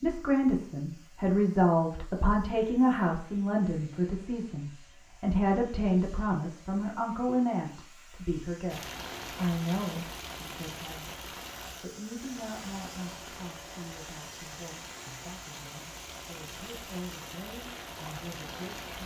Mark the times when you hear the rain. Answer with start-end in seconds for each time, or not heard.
8.7-19.0.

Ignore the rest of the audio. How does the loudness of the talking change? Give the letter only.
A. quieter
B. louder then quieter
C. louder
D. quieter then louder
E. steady
A.